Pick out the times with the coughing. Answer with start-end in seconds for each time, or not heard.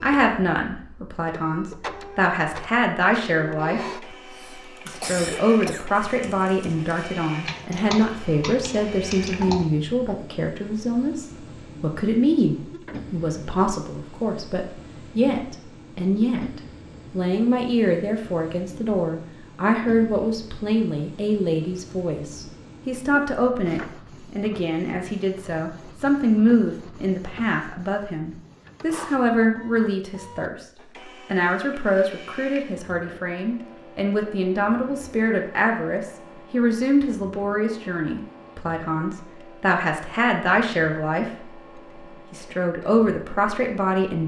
4.1-5.9.